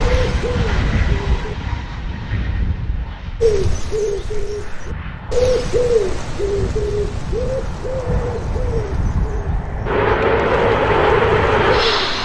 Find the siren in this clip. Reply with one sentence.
You can't hear the siren here.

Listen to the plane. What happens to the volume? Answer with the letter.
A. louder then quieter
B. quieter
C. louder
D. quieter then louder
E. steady
D.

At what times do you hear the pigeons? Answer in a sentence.
You can hear the pigeons from 0.0 to 1.6 s and from 3.4 to 12.2 s.